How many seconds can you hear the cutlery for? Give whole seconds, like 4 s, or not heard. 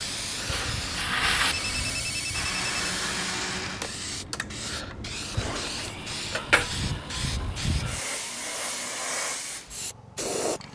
2 s.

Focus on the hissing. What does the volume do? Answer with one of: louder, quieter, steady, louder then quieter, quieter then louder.
steady.